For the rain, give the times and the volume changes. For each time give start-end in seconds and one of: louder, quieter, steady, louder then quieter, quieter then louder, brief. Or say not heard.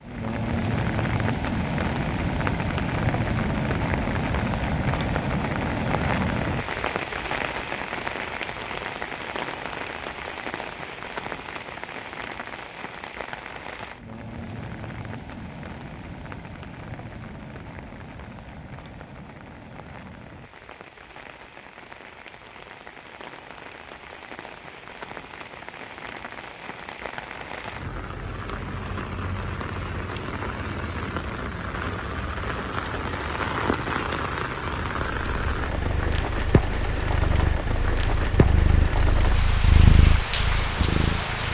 0.0-41.5 quieter then louder.